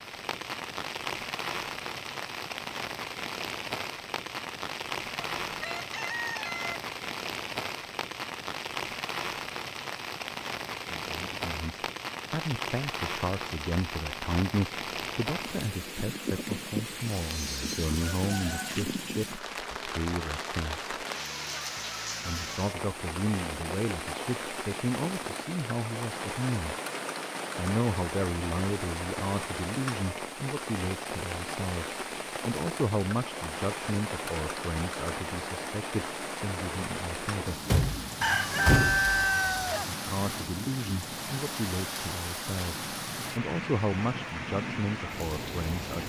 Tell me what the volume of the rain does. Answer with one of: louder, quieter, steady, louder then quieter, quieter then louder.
steady.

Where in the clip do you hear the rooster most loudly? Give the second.
39 s.